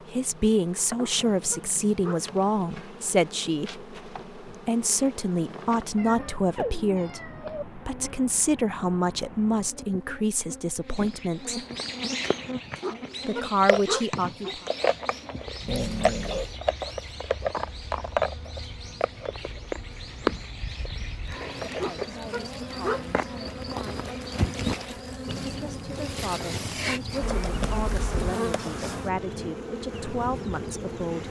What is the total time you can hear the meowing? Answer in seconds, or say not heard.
4 s.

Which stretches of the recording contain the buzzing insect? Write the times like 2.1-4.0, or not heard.
0.0-31.2.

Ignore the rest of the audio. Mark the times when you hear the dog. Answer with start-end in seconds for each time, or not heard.
0.9-2.2, 12.8-14.6, 21.8-23.1.